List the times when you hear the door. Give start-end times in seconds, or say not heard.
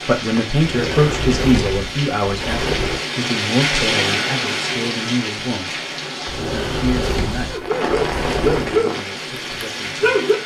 0.6-3.0, 6.2-8.8.